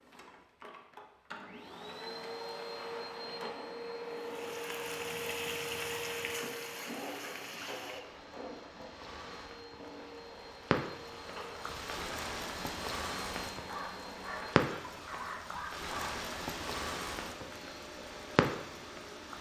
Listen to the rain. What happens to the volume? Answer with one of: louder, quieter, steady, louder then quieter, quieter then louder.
quieter then louder.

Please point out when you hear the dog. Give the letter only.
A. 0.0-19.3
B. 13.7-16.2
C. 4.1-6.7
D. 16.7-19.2
B.